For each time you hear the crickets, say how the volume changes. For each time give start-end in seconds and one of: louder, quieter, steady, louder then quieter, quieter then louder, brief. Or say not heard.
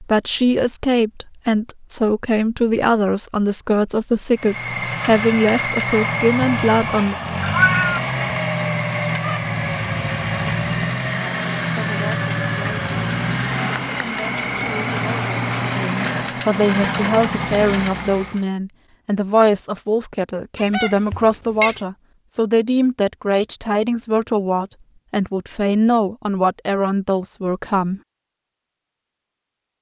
not heard.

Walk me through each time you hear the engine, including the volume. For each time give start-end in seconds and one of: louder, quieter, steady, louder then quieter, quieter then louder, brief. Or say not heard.
4.3-18.4 steady.